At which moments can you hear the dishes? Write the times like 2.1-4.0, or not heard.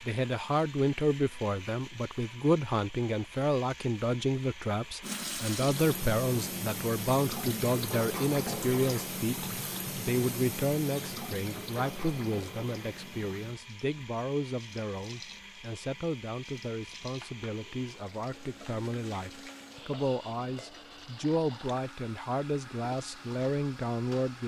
not heard.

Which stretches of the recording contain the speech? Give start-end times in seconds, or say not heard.
0.0-24.4.